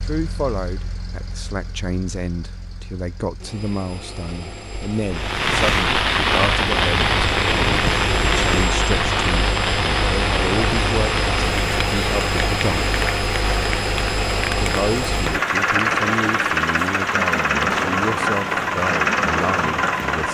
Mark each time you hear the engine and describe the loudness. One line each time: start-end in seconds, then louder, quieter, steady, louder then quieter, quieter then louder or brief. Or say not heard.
0.0-20.2 louder.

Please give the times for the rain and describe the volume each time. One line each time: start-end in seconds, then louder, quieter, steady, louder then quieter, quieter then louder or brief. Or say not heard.
5.1-20.2 quieter.